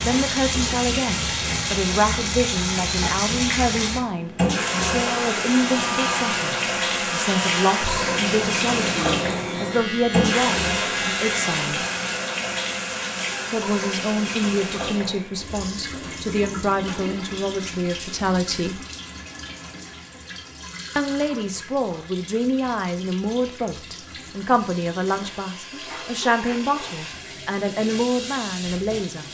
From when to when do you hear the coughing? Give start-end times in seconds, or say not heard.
not heard.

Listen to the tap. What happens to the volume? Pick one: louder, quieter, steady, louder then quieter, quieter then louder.
quieter.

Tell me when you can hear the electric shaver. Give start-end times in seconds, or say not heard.
4.7-11.7.